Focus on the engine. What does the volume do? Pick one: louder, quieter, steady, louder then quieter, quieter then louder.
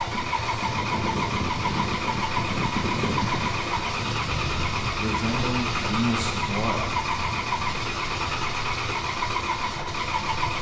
steady.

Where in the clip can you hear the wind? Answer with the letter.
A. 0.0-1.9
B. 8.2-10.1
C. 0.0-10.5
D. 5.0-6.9
C.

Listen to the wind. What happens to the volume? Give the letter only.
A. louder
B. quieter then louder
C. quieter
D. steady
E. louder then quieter
C.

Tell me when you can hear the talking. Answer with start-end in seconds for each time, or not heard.
5.0-6.9.